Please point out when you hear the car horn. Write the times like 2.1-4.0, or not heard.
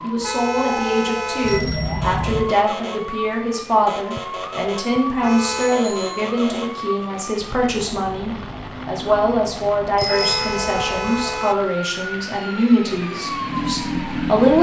0.2-1.6, 5.2-5.8, 10.1-11.7.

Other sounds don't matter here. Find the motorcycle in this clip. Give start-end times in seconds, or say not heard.
13.1-14.5.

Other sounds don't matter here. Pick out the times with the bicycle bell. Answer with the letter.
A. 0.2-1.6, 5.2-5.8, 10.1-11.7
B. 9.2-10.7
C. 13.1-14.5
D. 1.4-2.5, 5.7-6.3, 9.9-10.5
D.